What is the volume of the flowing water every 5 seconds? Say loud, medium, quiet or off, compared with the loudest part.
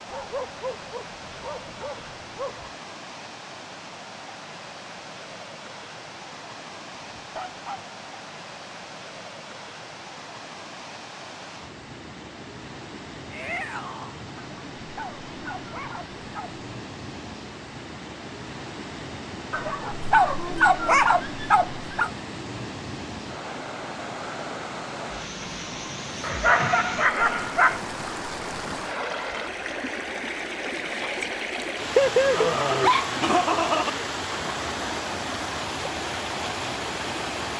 medium, medium, medium, medium, medium, loud, loud, loud.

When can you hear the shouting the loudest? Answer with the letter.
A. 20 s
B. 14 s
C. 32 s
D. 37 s
B.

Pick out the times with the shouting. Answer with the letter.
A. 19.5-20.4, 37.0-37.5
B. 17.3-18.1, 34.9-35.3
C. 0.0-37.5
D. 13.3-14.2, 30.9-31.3
D.